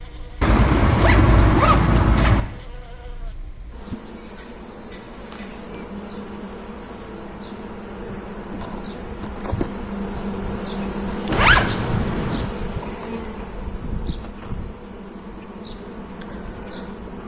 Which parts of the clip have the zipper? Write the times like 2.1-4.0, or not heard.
0.4-2.5, 11.2-12.4.